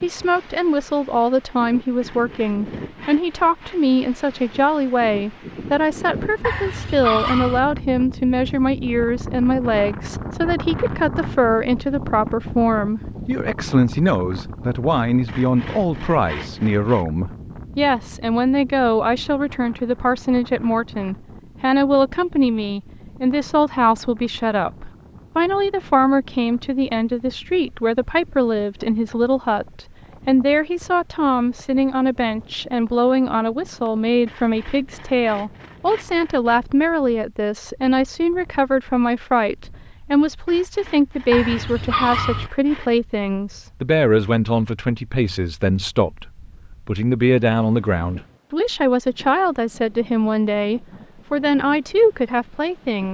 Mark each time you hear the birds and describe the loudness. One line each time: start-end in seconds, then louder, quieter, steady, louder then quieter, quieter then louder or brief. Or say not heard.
not heard.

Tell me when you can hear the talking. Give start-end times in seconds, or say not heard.
0.0-53.0.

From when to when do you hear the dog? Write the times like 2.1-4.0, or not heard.
6.4-7.6, 41.3-42.5.